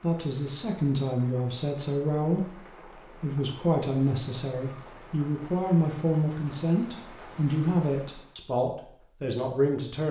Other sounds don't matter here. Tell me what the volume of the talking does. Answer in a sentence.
The volume of the talking stays about the same.